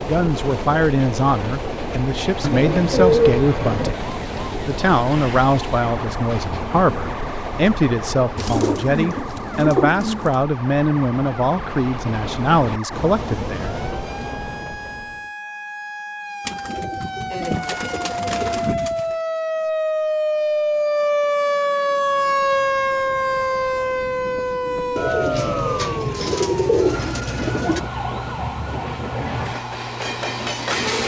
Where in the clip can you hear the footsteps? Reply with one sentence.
You can't hear the footsteps here.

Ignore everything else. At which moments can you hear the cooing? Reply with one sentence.
The cooing can be heard from 2.4 to 4.0 s, from 8.3 to 10.3 s, from 16.4 to 19.1 s and from 24.9 to 27.8 s.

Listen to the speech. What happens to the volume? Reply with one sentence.
The loudness of the speech stays about the same.